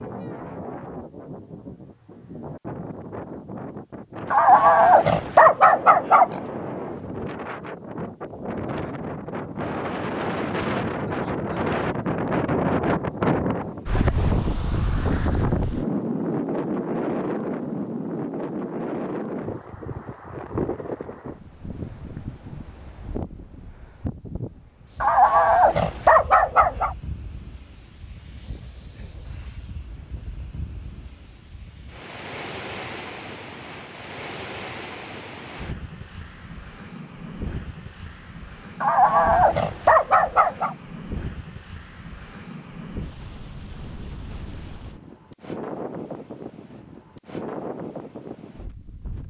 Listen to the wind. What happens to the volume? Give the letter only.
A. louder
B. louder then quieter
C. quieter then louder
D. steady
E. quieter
B.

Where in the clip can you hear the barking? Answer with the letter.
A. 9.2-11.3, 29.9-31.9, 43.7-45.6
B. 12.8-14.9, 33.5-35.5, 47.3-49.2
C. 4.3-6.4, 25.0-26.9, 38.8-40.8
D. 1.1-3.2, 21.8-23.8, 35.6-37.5
C.